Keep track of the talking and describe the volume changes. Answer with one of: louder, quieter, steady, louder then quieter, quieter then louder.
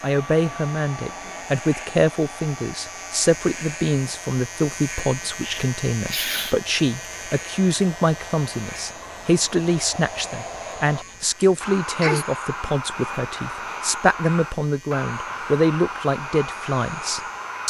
steady.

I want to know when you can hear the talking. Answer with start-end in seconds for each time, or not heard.
0.0-17.6.